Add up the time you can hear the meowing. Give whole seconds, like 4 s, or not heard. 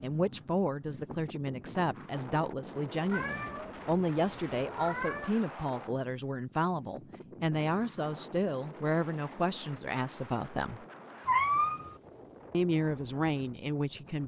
3 s.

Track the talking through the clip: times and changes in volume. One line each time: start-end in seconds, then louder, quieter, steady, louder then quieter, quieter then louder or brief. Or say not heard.
0.0-10.8 steady
12.5-14.2 brief.